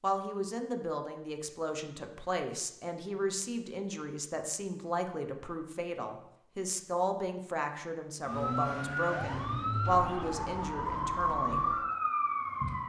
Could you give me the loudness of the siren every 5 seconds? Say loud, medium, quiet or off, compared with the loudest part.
off, loud, loud.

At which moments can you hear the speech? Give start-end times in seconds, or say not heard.
0.0-11.7.